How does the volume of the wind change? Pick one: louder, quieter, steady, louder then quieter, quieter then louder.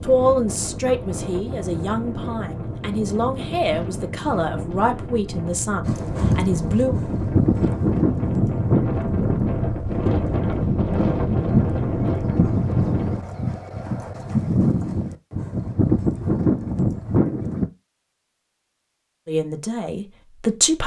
louder.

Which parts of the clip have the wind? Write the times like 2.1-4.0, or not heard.
0.0-13.2.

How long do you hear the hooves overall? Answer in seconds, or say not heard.
12 s.